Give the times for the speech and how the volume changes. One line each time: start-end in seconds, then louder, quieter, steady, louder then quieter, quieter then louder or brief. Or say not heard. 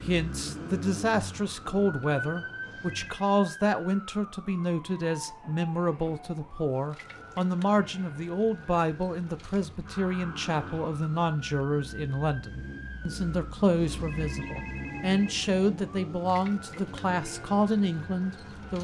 0.1-18.8 steady.